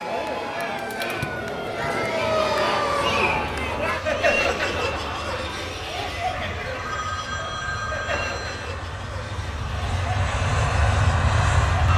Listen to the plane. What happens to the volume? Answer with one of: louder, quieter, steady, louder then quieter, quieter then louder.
louder.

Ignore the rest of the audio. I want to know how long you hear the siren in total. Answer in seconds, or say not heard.
3 s.